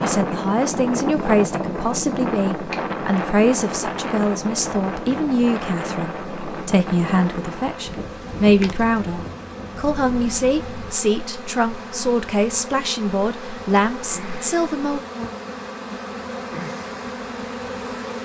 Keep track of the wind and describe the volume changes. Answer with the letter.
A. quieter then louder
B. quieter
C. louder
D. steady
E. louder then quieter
B.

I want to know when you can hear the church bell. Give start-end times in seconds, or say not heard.
not heard.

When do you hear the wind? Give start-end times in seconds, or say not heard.
0.0-10.9.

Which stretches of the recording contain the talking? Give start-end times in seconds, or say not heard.
0.0-15.0.